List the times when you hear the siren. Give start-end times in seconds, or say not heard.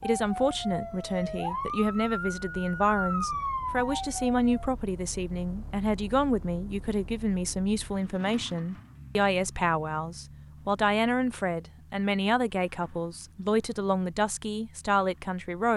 0.0-4.7.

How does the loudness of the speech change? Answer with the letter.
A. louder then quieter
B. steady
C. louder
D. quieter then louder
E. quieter
B.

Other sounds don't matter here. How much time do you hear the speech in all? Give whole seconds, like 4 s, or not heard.
16 s.